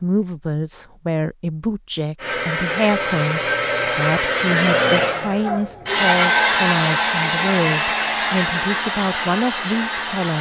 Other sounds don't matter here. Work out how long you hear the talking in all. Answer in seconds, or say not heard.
10 s.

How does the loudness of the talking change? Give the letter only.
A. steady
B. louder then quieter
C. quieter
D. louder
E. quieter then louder
A.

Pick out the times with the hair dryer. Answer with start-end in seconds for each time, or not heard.
2.1-10.3.